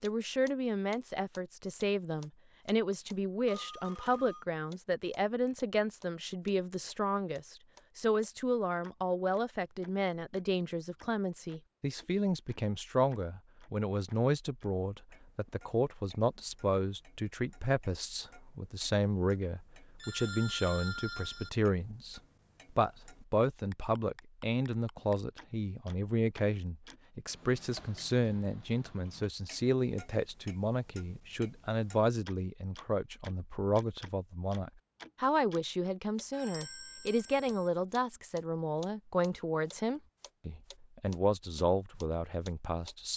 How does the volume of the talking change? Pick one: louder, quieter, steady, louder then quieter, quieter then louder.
steady.